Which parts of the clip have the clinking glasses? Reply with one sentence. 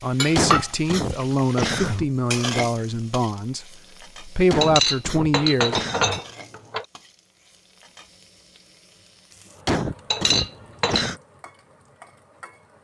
You can hear the clinking glasses from 0.2 to 0.7 s, from 4.6 to 6.8 s and from 10.1 to 11.1 s.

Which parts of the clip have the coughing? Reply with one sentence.
The coughing can be heard from 0.3 to 2.0 s, from 4.5 to 6.2 s and from 9.7 to 11.2 s.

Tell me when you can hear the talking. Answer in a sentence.
The talking can be heard from 0.0 to 5.8 s.